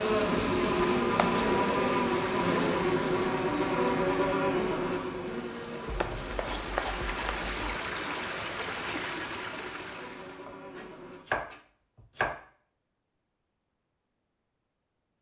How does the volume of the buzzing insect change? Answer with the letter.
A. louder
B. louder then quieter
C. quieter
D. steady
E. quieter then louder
C.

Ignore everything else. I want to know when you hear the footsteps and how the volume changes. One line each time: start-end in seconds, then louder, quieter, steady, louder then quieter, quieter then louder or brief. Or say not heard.
not heard.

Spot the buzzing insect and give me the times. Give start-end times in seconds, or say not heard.
0.0-11.2.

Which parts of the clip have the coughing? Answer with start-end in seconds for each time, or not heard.
not heard.